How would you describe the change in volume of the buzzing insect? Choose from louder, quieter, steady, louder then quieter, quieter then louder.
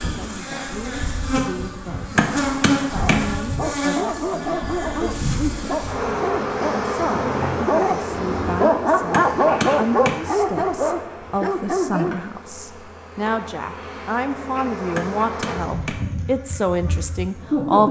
quieter then louder.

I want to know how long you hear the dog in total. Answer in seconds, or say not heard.
9 s.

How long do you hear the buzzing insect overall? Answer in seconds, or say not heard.
18 s.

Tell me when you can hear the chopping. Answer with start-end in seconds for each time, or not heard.
2.1-3.2, 9.1-10.2, 14.9-16.1.